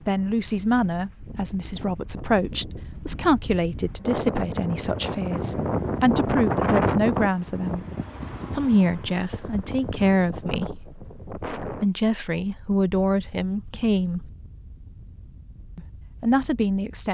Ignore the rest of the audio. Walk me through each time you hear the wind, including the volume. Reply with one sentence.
You can hear the wind from 0.0 to 17.0 s, getting louder then quieter.